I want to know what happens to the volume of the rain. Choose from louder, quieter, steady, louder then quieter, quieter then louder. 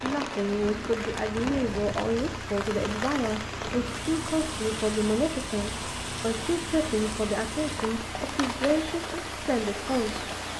steady.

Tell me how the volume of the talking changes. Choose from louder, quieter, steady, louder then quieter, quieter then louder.
steady.